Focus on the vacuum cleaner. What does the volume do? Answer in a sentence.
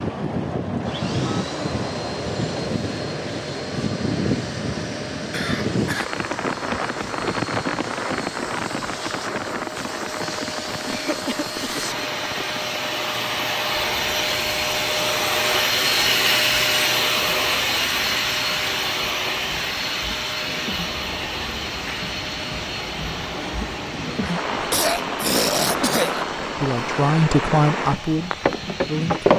The volume of the vacuum cleaner goes up, then down.